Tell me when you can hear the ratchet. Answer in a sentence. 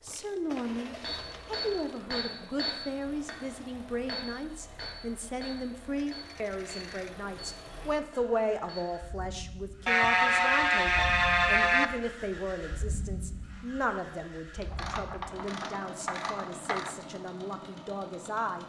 You can hear the ratchet from 0.1 to 2.6 s, from 6.0 to 7.2 s, from 9.8 to 11.8 s and from 14.6 to 16.9 s.